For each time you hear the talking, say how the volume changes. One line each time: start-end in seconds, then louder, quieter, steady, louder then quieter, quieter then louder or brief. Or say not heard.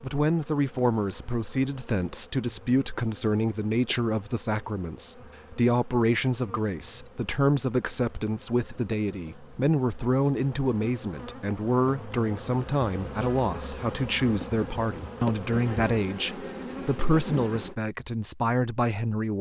0.0-19.3 steady.